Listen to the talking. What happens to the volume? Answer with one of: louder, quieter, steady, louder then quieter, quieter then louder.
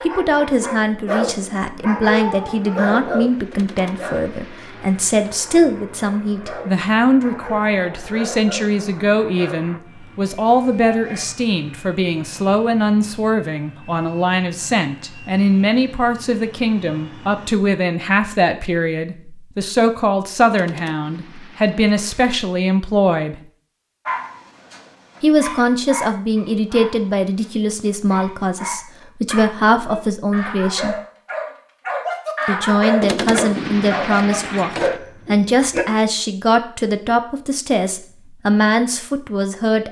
steady.